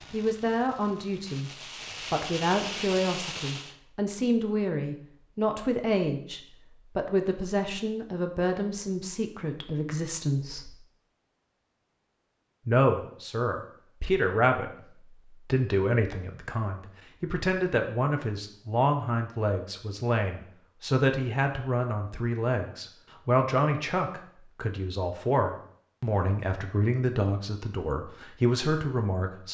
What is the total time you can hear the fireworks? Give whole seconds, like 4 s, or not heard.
4 s.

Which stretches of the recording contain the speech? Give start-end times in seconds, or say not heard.
0.1-1.5, 2.1-10.8, 12.7-29.4.